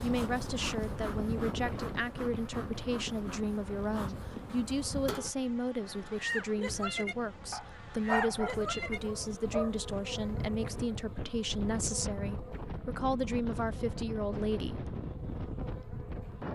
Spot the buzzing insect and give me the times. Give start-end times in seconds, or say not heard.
0.0-16.5.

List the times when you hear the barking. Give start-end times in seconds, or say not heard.
7.5-9.8.